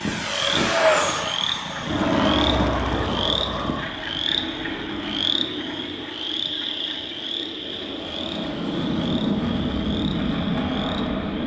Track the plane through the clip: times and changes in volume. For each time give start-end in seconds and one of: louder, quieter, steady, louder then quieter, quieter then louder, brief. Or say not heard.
0.0-11.4 quieter then louder.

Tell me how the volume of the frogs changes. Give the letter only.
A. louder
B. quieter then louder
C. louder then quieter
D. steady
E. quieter
E.